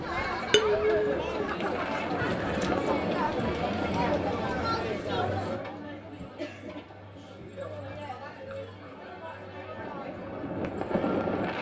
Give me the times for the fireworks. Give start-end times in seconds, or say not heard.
1.6-5.0, 9.8-11.5.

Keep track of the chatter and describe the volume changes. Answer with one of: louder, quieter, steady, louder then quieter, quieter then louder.
quieter.